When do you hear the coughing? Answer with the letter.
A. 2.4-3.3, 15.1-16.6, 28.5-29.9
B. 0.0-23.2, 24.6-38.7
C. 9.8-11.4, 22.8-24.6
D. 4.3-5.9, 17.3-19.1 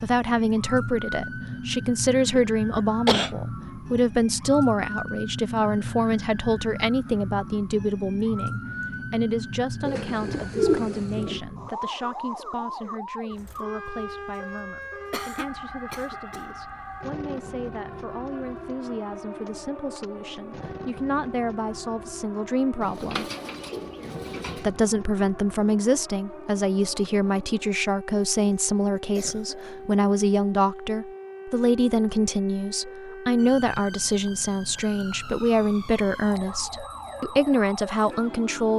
A.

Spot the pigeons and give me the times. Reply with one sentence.
You can hear the pigeons from 9.8 to 11.4 s and from 22.8 to 24.6 s.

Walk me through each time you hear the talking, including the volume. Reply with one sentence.
The talking can be heard from 0.0 to 23.2 s, getting quieter then louder; and from 24.6 to 38.7 s, at a steady volume.